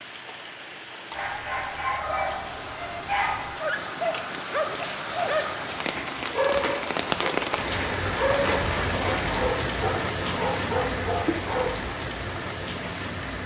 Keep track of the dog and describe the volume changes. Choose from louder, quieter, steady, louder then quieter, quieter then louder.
steady.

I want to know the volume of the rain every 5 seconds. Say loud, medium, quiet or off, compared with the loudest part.
medium, loud, loud.